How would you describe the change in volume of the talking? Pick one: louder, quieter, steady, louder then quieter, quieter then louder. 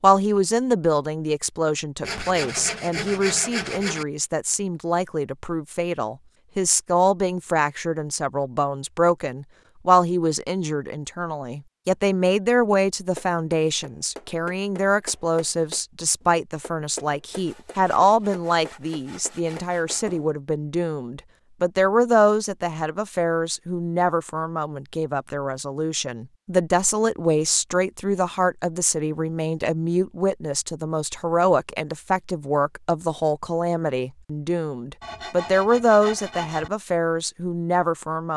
steady.